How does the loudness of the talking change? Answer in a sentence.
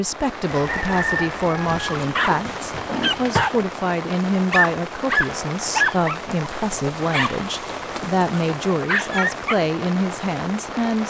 The loudness of the talking stays about the same.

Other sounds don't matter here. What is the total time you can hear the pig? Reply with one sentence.
The pig can be heard for 2 seconds in total.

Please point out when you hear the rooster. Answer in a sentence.
You can hear the rooster from 0.5 to 1.9 s.